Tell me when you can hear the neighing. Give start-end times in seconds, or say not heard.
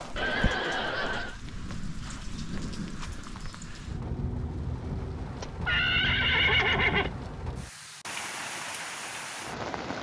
0.1-1.4, 5.4-7.2.